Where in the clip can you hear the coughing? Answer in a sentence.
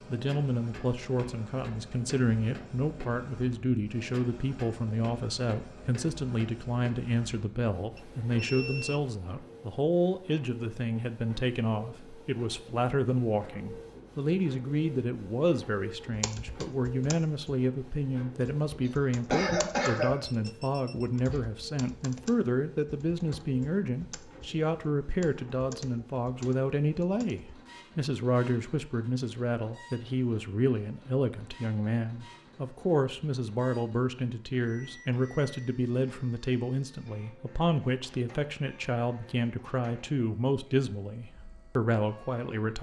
You can hear the coughing from 18.9 to 20.1 s.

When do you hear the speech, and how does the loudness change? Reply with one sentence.
The speech can be heard from 0.1 to 42.7 s, at a steady volume.